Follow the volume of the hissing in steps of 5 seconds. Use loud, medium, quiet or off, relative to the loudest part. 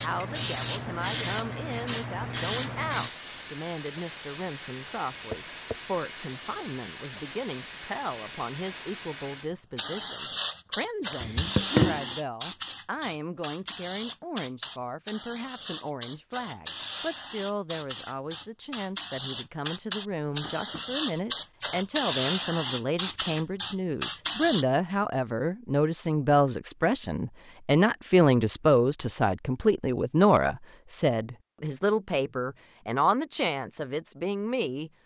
loud, loud, loud, medium, loud, off, off.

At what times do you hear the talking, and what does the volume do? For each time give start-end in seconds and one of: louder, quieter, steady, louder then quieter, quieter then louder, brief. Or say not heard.
0.0-34.9 louder.